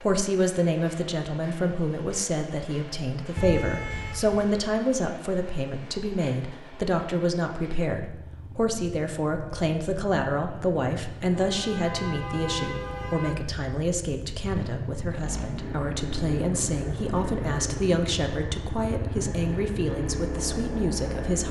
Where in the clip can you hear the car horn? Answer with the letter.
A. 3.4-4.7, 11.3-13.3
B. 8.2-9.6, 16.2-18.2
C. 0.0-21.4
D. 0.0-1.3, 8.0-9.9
A.